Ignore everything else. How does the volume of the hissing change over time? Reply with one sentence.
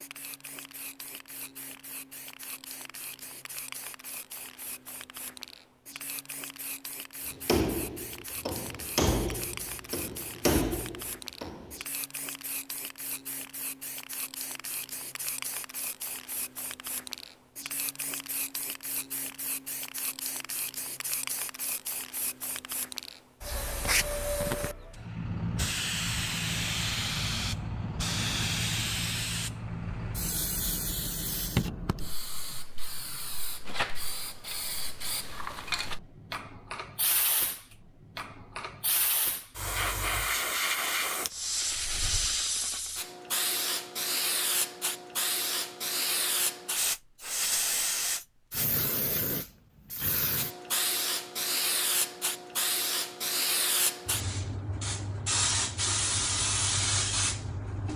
The loudness of the hissing goes up.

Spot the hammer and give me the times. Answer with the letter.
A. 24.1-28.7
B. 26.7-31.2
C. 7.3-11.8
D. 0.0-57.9
C.